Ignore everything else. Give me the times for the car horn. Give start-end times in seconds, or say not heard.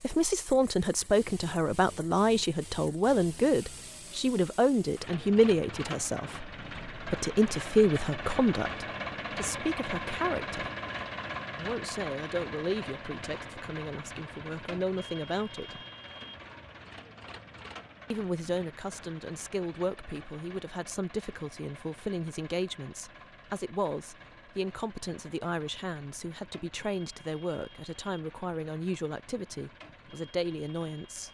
not heard.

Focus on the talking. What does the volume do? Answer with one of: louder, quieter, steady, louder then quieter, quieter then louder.
quieter.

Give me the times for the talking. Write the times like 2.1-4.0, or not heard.
0.0-10.7, 11.6-15.8, 18.1-31.2.